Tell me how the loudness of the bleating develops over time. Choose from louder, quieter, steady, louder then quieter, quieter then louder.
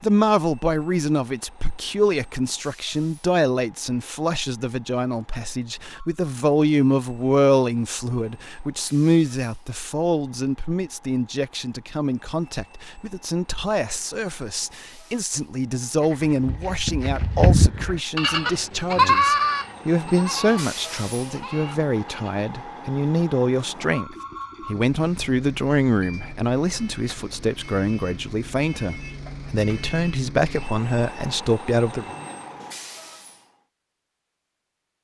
louder then quieter.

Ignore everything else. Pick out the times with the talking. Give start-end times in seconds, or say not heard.
0.0-32.1.